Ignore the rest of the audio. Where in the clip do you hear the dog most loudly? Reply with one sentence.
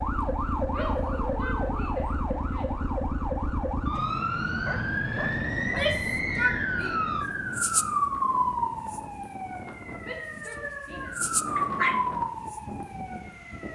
The loudest moment of the dog is at 12 seconds.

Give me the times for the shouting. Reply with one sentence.
The shouting can be heard from 0.7 to 2.8 s, from 5.5 to 7.1 s and from 10.0 to 11.3 s.